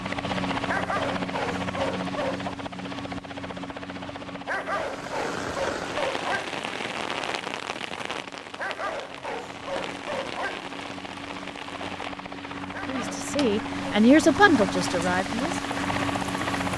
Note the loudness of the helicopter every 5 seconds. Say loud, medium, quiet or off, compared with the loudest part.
loud, quiet, medium, loud.